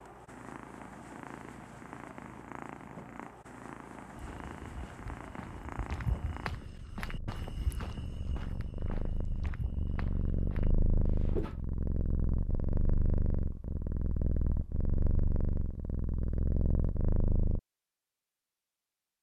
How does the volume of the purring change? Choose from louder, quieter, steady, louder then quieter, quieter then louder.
louder.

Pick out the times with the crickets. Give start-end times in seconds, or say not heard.
not heard.